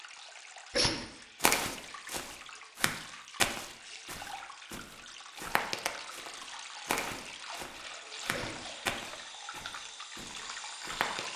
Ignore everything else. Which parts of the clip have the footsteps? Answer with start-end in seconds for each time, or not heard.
1.4-11.2.